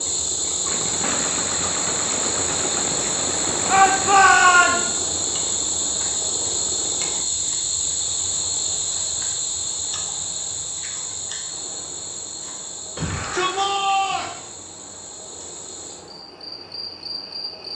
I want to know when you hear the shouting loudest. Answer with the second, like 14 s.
4 s.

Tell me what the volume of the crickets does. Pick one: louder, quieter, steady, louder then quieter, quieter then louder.
quieter.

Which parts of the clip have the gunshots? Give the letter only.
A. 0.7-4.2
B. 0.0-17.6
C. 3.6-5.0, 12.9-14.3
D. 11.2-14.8
A.